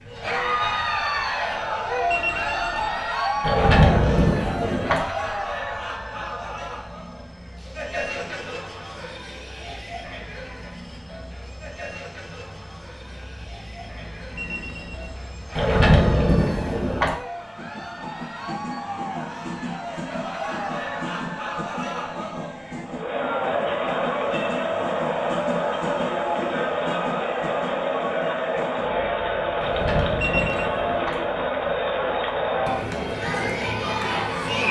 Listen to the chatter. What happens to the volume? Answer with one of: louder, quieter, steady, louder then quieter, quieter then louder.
quieter then louder.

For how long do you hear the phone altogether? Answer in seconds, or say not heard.
2 s.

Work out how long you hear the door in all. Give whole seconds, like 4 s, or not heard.
5 s.